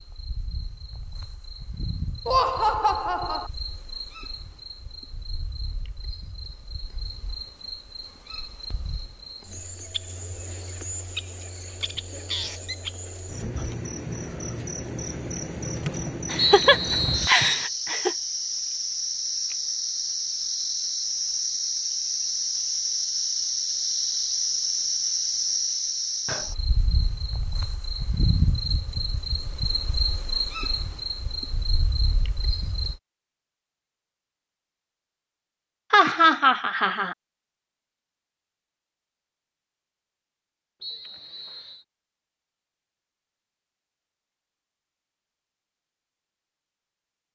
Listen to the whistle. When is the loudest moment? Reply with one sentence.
The loudest moment of the whistle is at 17 seconds.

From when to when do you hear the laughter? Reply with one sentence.
The laughter can be heard from 2.2 to 3.5 s, from 16.3 to 18.1 s and from 35.9 to 37.1 s.